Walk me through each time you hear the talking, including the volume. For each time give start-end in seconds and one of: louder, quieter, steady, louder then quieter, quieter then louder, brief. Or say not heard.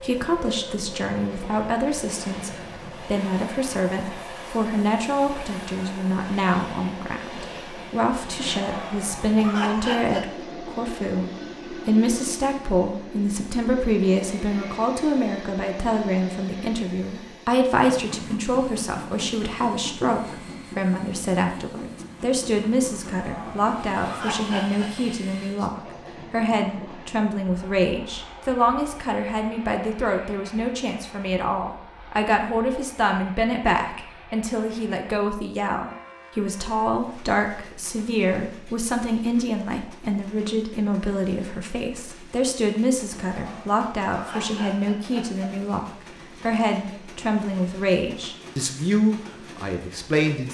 0.0-50.5 steady.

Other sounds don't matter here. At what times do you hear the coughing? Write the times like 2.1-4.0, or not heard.
8.3-10.4, 23.1-25.1, 43.4-45.5.